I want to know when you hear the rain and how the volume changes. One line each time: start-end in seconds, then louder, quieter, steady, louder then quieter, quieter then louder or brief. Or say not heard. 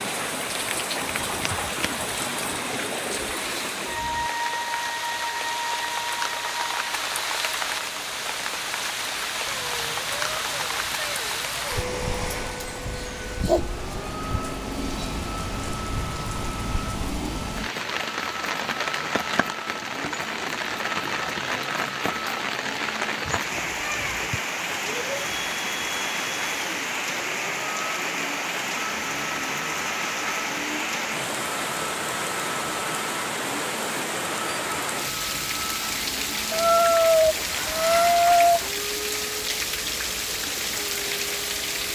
0.0-41.9 steady.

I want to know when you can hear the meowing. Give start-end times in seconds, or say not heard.
9.4-11.9, 23.6-24.1, 36.5-38.7.